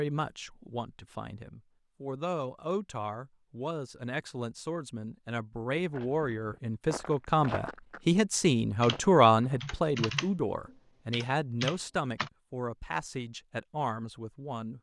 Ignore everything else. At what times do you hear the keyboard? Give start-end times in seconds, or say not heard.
8.8-12.3.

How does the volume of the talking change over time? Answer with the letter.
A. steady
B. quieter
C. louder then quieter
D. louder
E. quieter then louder
C.